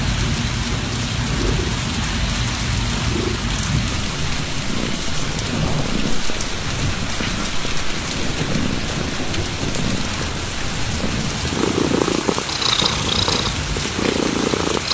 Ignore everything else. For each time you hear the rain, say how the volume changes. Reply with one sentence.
You can hear the rain from 0.0 to 14.9 s, at a steady volume.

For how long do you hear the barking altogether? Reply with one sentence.
You can't hear the barking here.